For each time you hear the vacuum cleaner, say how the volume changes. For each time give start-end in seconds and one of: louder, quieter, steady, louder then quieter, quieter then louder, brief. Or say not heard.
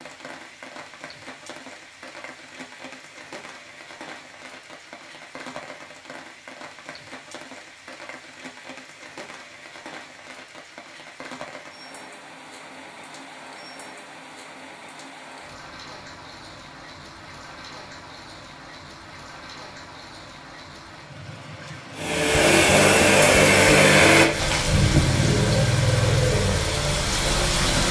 21.9-27.8 quieter.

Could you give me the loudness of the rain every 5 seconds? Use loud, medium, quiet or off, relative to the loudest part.
quiet, quiet, quiet, quiet, medium, loud.